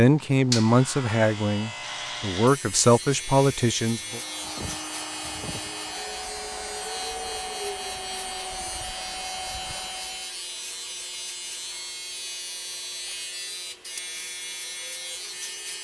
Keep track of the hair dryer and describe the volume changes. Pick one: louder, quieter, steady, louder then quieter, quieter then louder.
steady.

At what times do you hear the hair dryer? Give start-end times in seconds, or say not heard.
4.0-10.3.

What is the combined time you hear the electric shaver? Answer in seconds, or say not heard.
16 s.